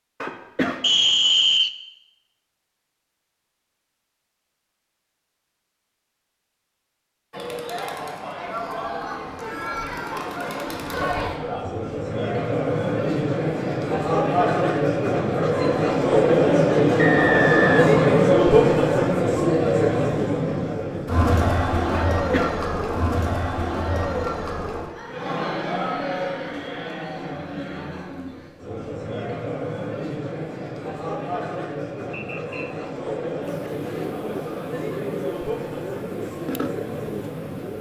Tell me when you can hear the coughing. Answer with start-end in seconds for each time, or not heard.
0.2-0.8, 21.9-22.6.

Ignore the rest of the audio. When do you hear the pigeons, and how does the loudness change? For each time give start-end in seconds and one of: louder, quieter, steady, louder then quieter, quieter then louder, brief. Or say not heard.
33.4-37.7 steady.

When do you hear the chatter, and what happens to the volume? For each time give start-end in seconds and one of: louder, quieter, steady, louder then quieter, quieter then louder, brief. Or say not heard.
7.3-37.7 louder then quieter.